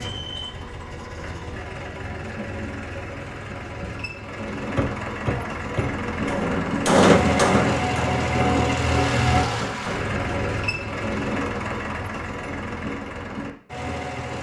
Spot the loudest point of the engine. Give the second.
9 s.